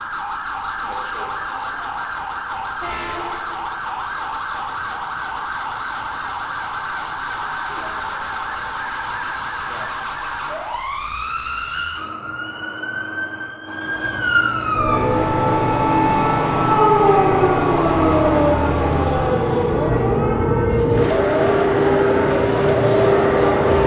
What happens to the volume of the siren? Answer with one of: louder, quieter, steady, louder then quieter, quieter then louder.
louder then quieter.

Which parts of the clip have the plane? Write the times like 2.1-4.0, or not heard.
14.7-23.8.